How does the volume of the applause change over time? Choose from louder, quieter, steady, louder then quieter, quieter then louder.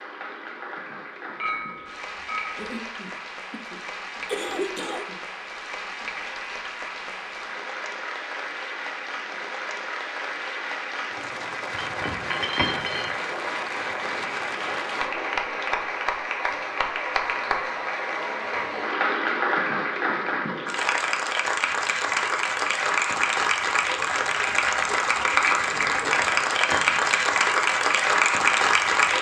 louder.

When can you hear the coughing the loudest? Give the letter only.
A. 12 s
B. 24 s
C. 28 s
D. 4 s
D.